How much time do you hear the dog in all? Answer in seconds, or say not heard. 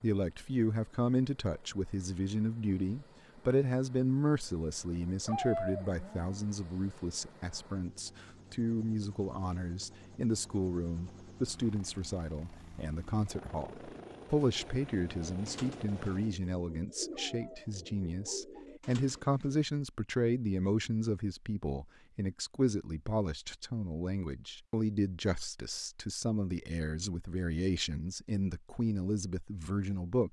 2 s.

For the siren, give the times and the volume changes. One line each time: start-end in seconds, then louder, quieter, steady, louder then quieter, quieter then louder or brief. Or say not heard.
not heard.